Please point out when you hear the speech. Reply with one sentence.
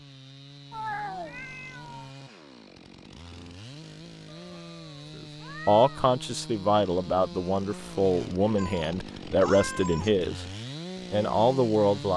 The speech can be heard from 5.7 to 10.4 s and from 11.1 to 12.1 s.